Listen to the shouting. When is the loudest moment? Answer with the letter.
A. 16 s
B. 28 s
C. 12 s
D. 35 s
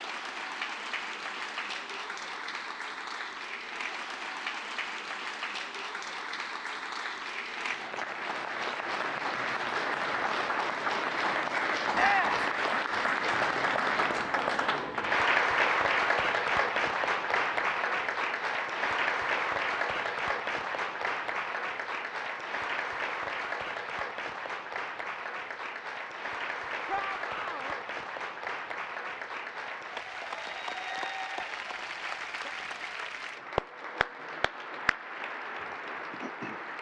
C.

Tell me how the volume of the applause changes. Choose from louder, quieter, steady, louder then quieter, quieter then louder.
louder then quieter.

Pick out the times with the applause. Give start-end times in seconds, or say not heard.
0.0-36.7.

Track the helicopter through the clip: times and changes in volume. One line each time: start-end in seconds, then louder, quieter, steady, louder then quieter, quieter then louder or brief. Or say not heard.
not heard.